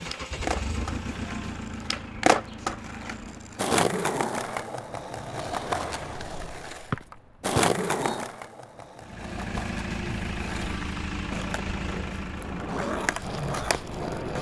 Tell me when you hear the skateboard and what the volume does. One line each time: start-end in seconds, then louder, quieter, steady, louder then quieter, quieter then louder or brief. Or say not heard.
0.0-14.3 quieter then louder.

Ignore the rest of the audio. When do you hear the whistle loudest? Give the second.
7 s.